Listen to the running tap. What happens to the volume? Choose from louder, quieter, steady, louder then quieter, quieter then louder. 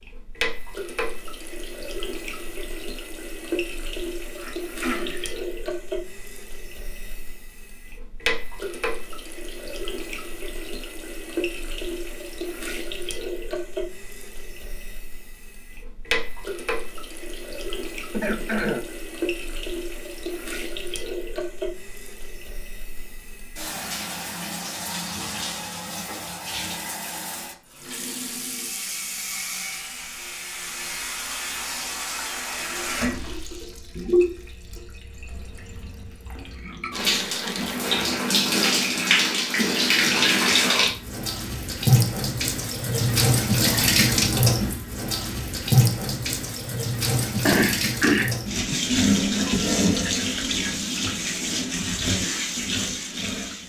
louder.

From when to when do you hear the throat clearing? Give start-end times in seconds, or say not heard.
4.3-5.3, 18.1-18.9, 47.5-48.8.